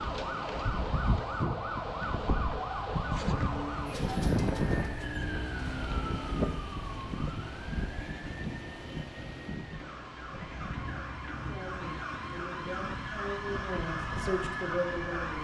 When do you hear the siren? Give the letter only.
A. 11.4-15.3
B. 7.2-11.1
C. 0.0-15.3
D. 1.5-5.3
C.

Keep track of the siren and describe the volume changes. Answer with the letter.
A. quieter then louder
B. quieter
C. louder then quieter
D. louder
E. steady
A.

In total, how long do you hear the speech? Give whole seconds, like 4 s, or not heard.
4 s.